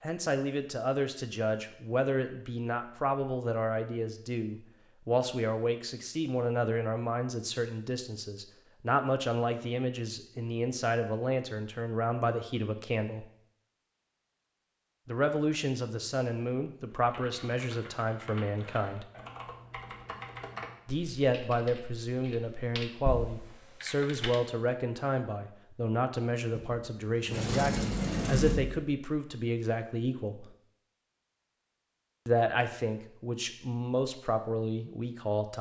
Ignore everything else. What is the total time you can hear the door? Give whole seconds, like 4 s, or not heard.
2 s.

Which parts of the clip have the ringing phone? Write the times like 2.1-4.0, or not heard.
not heard.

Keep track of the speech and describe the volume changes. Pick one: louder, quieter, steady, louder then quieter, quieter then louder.
steady.